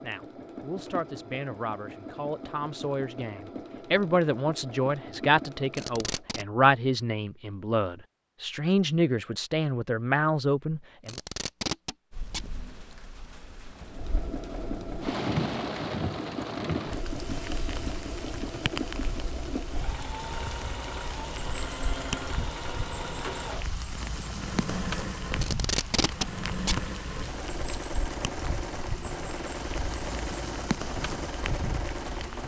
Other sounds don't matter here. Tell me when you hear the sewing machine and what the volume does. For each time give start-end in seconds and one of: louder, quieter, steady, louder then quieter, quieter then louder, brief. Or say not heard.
0.0-6.3 steady
13.8-32.4 steady.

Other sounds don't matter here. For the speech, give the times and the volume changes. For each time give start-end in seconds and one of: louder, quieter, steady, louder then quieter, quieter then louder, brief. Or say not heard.
0.0-11.2 louder.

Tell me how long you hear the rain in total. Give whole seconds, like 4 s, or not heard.
20 s.